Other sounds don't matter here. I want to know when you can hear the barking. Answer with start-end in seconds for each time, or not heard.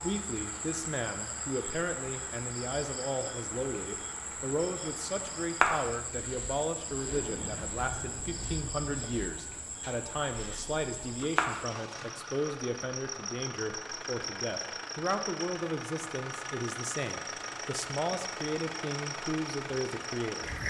not heard.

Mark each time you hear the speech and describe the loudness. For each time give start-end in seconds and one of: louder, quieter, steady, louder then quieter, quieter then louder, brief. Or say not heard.
0.0-20.5 steady.